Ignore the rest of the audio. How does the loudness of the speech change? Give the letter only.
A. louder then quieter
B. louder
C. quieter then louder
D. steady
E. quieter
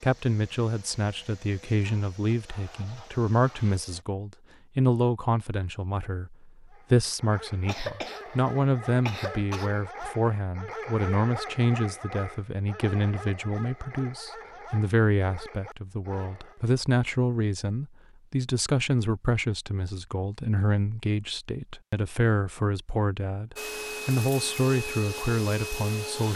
D.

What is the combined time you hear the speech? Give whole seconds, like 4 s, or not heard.
26 s.